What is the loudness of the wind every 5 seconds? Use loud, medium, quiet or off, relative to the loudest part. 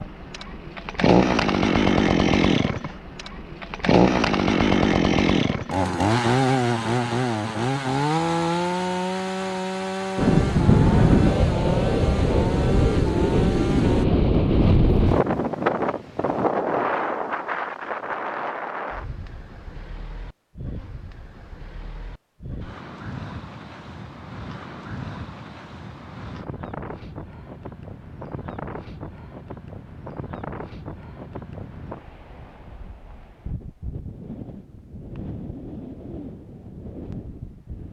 off, off, loud, medium, quiet, quiet, quiet, quiet.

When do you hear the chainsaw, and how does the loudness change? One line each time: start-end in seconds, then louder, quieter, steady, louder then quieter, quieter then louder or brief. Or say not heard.
0.0-14.1 quieter.